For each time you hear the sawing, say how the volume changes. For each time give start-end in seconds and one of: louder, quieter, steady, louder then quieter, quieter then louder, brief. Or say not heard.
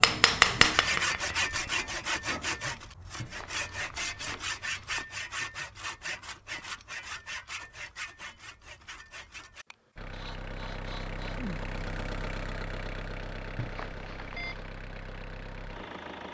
0.7-11.4 quieter.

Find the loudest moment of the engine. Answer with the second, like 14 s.
12 s.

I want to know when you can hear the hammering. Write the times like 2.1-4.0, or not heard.
0.0-2.5.